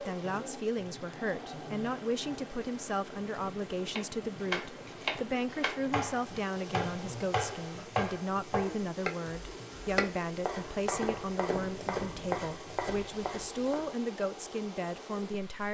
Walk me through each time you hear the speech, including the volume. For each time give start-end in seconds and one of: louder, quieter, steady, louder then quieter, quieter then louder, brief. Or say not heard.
0.0-15.6 steady.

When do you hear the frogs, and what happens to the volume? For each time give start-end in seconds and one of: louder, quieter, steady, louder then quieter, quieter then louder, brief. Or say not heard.
not heard.